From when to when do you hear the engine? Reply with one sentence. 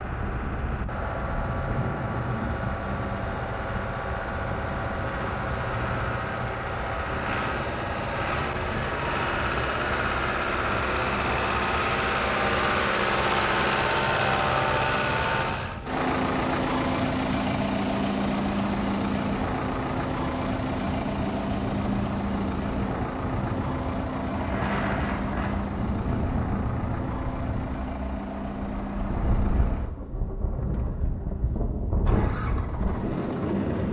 The engine can be heard from 0.0 to 33.8 s.